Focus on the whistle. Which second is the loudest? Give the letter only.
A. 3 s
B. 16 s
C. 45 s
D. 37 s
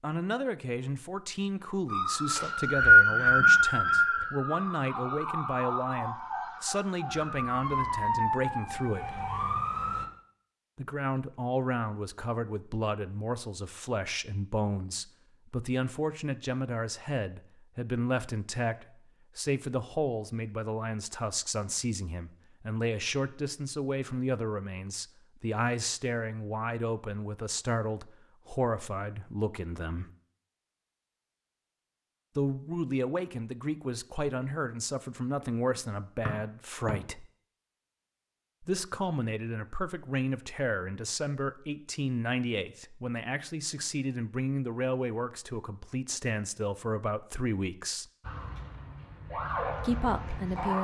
A.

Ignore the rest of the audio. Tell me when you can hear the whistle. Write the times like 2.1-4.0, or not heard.
2.4-4.2, 36.2-37.0.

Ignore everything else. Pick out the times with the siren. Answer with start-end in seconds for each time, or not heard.
1.9-10.1, 48.2-50.7.